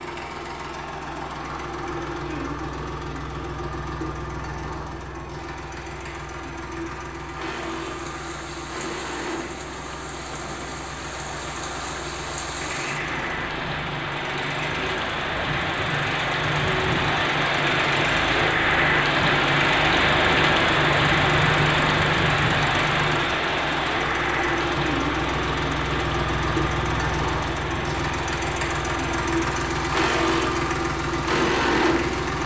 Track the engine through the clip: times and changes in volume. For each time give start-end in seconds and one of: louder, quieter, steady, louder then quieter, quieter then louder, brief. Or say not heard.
0.0-32.4 louder.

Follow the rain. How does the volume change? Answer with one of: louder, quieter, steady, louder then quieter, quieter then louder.
louder then quieter.